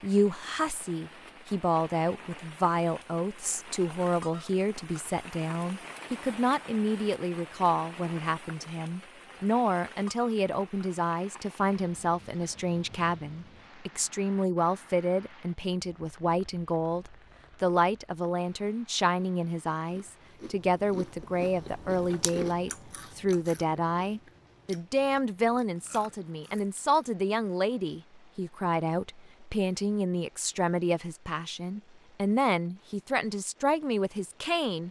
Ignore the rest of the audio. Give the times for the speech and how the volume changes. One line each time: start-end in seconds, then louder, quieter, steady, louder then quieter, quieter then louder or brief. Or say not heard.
0.0-34.8 steady.